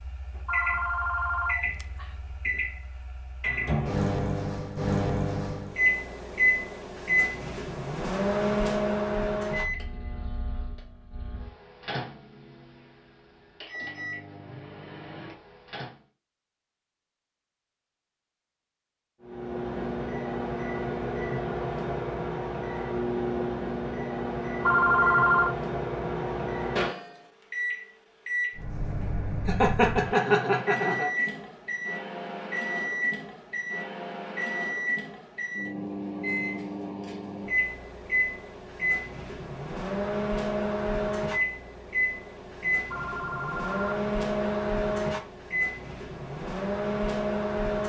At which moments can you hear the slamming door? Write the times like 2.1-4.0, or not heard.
not heard.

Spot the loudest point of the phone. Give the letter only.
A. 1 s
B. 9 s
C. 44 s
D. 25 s
D.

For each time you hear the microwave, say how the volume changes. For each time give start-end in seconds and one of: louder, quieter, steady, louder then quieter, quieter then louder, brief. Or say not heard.
0.0-16.0 louder then quieter
19.2-47.8 steady.